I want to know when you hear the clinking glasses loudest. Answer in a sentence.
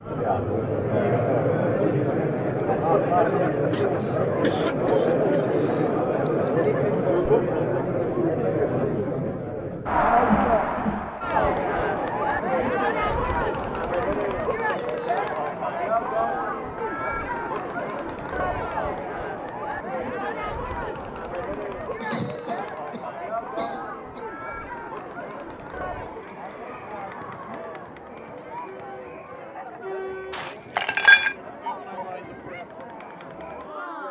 The volume of the clinking glasses peaks at 31 seconds.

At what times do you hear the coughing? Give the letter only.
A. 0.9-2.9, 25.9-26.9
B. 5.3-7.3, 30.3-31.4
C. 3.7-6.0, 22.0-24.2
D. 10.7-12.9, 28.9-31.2
C.